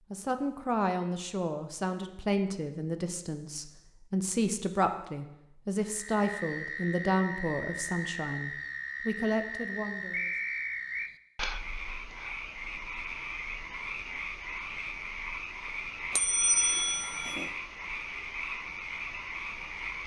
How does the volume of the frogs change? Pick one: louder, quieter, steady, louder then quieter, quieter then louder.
steady.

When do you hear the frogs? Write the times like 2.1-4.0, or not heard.
5.8-20.0.